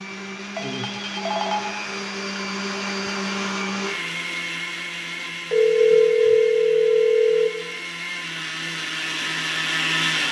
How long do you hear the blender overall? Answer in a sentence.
You can hear the blender for 10 seconds altogether.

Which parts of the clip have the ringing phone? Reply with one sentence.
The ringing phone can be heard from 0.6 to 1.6 s and from 5.5 to 7.5 s.